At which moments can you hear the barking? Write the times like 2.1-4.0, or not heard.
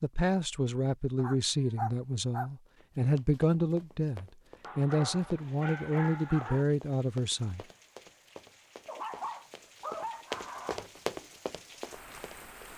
1.1-2.5, 4.6-6.7, 8.8-10.9.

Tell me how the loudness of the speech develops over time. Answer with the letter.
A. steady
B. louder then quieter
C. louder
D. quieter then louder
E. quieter
A.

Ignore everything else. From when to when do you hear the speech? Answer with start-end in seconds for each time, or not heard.
0.0-7.7.